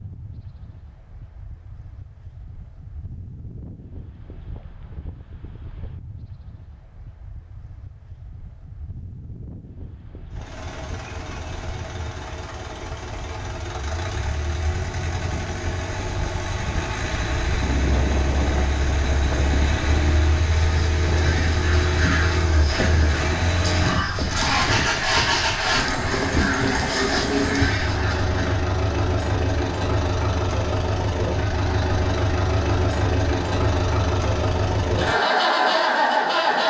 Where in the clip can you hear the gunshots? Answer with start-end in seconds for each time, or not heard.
not heard.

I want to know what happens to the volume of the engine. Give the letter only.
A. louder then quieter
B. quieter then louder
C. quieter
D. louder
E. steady
D.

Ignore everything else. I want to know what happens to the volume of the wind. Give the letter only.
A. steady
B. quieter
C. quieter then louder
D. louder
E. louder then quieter
D.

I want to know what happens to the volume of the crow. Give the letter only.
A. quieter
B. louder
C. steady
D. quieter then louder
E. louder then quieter
C.